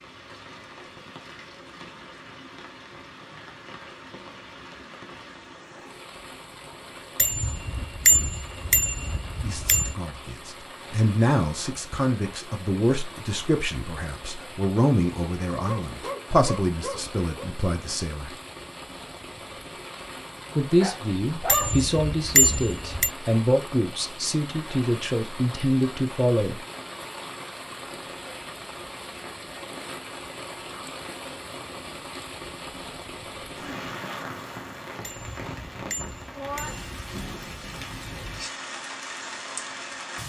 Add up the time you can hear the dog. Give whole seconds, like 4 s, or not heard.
3 s.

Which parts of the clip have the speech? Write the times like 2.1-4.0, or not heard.
9.4-18.3, 20.6-26.6.